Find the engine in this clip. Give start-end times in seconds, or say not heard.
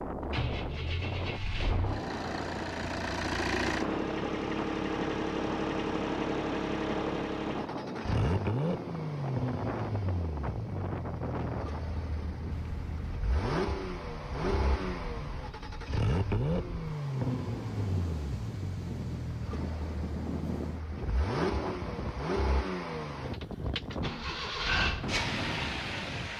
0.1-26.3.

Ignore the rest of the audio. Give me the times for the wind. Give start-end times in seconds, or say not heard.
0.0-26.3.